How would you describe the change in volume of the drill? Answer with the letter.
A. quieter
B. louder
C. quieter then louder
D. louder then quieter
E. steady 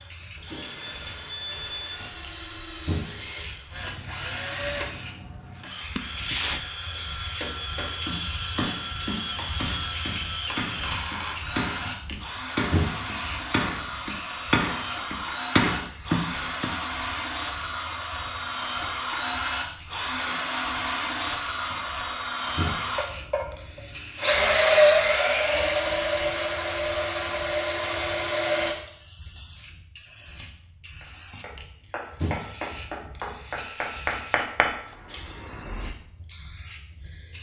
B.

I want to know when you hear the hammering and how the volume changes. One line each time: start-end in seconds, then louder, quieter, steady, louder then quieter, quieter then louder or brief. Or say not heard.
6.9-16.7 louder
31.0-35.9 louder then quieter.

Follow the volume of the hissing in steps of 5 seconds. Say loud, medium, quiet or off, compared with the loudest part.
medium, loud, loud, medium, medium, medium, medium, medium.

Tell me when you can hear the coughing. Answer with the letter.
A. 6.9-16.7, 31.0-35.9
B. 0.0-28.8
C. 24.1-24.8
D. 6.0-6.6
D.